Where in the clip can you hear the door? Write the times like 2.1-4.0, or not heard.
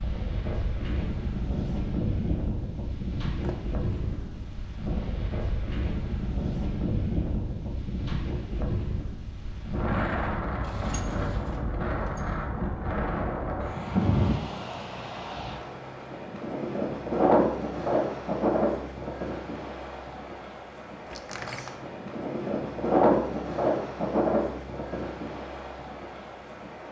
3.4-4.6, 10.6-12.3, 21.1-21.9.